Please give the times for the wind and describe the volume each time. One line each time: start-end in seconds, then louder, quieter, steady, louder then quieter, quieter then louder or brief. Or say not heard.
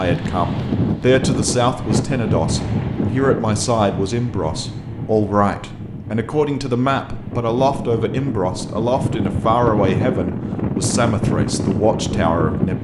0.0-12.7 quieter then louder.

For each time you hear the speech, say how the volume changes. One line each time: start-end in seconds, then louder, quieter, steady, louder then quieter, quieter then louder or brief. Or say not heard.
0.0-12.7 steady.